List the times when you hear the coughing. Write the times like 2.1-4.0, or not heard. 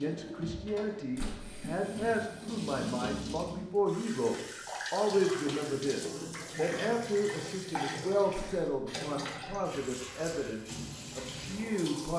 5.5-7.0.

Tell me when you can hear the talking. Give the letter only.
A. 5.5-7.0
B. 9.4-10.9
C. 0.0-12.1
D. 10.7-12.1
C.